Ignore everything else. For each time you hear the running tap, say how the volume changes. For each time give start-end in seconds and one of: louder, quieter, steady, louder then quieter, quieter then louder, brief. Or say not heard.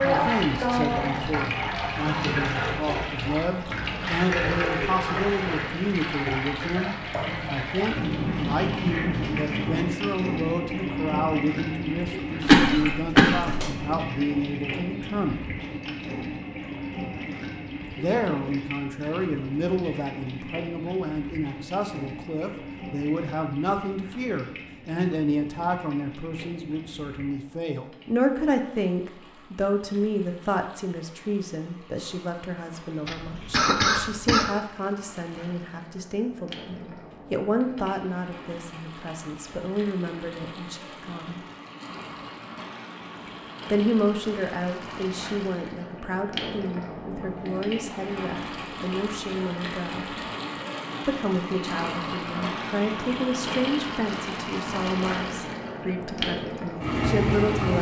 0.0-57.7 quieter then louder.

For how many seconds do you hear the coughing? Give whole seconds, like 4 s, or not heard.
3 s.